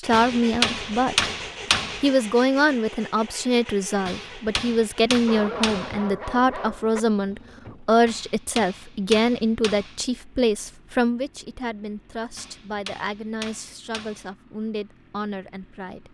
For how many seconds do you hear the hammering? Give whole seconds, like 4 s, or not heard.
8 s.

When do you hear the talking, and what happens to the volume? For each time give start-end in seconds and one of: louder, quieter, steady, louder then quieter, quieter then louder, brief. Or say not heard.
0.0-1.3 brief
2.0-16.0 quieter.